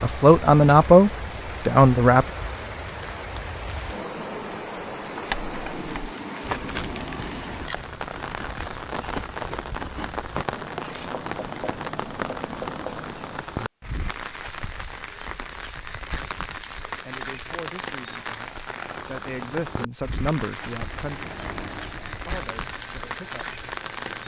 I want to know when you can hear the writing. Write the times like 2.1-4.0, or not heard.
5.3-13.4.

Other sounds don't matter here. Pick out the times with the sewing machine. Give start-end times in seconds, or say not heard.
20.6-24.2.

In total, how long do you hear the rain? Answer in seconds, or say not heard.
24 s.